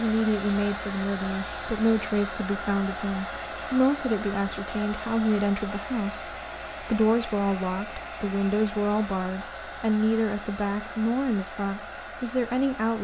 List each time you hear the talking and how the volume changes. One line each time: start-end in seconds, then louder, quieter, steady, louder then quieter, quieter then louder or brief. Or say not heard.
0.0-12.9 steady.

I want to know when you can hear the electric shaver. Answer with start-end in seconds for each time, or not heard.
not heard.